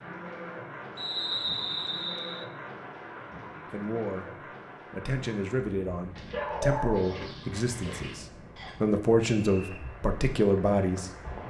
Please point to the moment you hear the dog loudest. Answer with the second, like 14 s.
7 s.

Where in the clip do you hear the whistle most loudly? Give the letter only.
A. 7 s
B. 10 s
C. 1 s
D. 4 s
C.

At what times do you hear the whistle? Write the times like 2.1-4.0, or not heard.
0.9-2.5, 8.6-9.8.